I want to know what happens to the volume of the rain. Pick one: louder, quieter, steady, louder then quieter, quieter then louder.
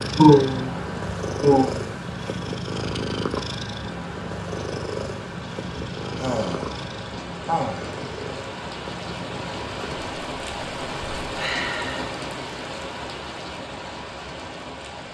louder.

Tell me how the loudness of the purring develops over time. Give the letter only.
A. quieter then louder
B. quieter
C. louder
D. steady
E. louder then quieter
B.